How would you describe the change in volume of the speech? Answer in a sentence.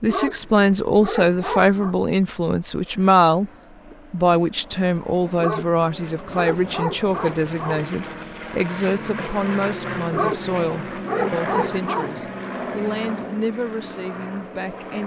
The volume of the speech goes down.